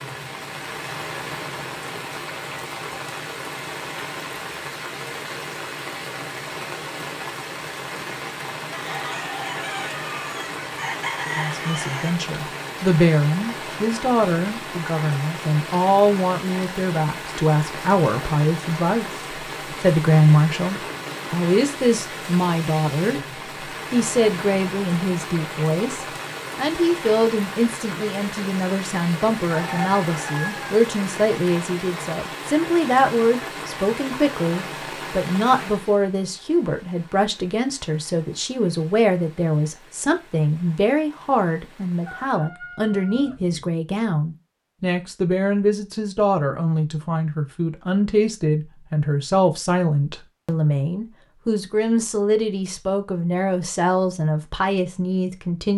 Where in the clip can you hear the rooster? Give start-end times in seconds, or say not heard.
8.7-12.1, 29.4-30.8, 42.0-43.7.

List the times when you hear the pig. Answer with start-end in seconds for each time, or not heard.
not heard.